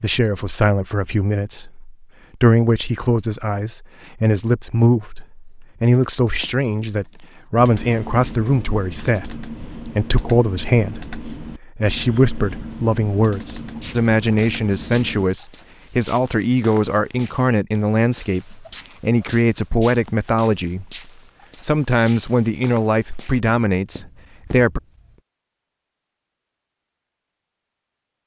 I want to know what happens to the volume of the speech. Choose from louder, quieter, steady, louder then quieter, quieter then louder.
steady.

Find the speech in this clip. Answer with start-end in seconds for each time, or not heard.
0.0-20.9, 21.6-24.8.